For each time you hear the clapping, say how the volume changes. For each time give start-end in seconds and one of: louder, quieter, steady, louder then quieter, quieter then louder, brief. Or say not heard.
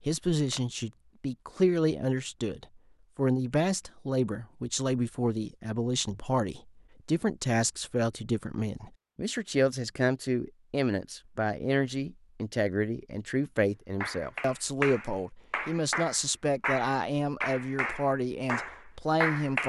14.0-19.6 steady.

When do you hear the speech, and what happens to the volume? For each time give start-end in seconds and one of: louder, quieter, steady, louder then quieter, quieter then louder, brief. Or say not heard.
0.1-19.6 steady.